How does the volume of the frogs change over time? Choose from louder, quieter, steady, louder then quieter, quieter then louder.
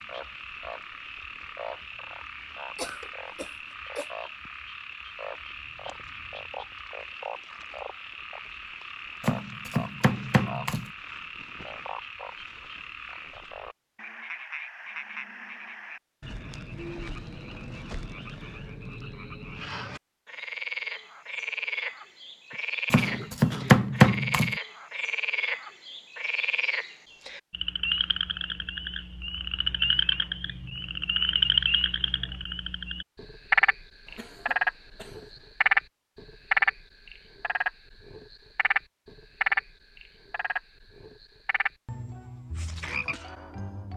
louder.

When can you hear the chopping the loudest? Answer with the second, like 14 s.
24 s.